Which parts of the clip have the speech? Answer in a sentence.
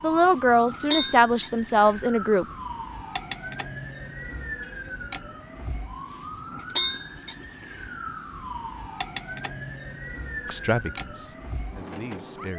The speech can be heard from 0.0 to 2.5 s and from 10.4 to 12.5 s.